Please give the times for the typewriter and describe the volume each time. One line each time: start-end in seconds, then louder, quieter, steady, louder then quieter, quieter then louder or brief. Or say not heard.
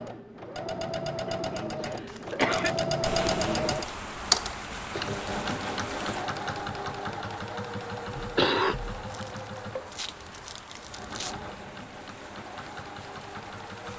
not heard.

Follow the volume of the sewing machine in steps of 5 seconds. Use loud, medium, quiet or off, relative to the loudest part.
loud, medium, quiet.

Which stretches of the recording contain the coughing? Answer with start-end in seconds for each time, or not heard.
1.4-2.8, 8.1-8.9.